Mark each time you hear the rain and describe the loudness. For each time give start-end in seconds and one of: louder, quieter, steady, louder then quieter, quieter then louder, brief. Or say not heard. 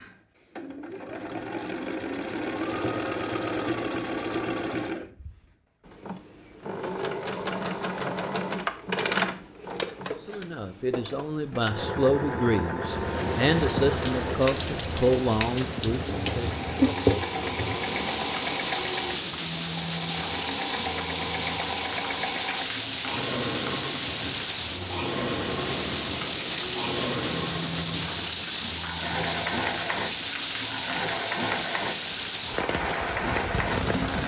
12.8-34.2 steady.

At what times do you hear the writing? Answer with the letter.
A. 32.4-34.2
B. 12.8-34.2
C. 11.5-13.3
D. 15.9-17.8
D.